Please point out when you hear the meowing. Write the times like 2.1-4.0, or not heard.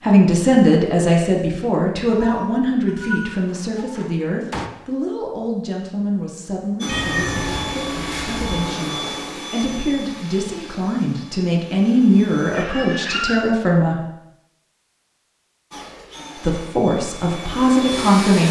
2.0-4.0, 6.8-8.7, 12.5-13.4.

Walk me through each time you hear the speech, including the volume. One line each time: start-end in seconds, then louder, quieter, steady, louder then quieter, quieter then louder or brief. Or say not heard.
0.0-14.0 quieter then louder
16.4-18.4 brief.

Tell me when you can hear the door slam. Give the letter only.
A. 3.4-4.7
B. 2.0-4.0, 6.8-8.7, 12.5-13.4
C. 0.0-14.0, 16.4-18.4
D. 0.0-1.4
A.